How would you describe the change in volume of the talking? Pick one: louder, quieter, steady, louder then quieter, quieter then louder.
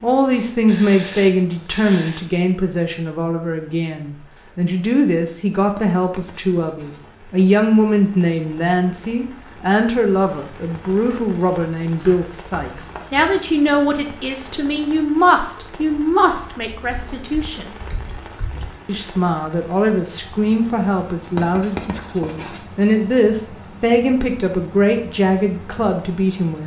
steady.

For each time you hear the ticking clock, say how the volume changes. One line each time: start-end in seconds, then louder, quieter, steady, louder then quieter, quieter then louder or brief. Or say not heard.
not heard.